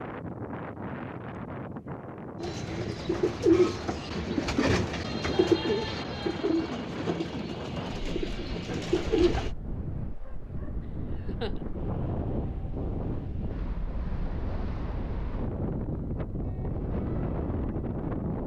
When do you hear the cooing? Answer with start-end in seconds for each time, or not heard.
2.4-9.5.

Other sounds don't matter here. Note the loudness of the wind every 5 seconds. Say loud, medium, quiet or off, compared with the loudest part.
medium, medium, loud, loud.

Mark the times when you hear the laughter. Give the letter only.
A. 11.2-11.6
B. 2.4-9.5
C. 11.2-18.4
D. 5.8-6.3
A.